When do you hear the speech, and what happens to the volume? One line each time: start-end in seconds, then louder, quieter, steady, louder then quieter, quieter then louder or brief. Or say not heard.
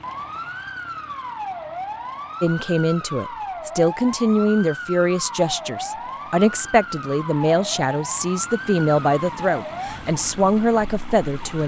2.4-11.6 steady.